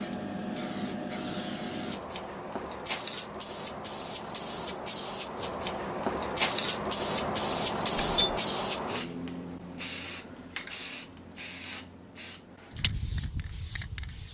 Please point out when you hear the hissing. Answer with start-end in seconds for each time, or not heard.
0.0-14.2.